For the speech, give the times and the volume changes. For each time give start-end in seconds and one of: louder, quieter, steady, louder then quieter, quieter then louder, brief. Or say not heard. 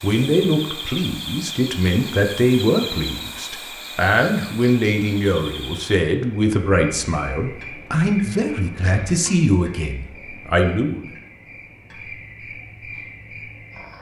0.0-11.1 steady.